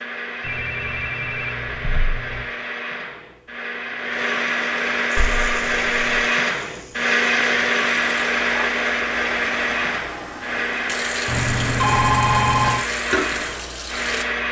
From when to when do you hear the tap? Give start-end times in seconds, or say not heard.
5.1-14.4.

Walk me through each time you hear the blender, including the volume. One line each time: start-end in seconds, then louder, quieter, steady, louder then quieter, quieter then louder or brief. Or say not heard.
0.0-14.4 louder then quieter.